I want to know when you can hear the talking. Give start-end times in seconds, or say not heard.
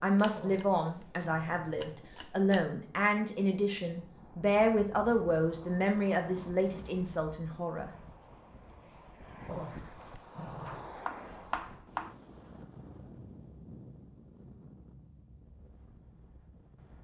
0.0-7.9.